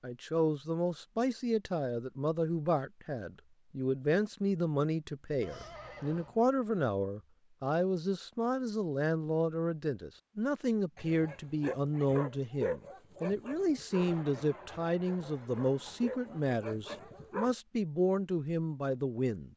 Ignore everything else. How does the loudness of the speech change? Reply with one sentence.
The loudness of the speech stays about the same.